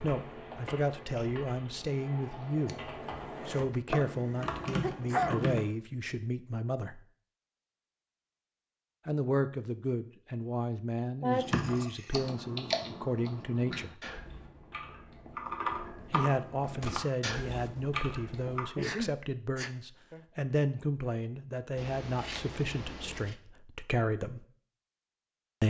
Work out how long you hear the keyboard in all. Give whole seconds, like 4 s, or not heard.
13 s.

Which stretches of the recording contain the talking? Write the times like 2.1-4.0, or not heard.
0.0-7.0, 9.1-13.9, 16.1-24.4.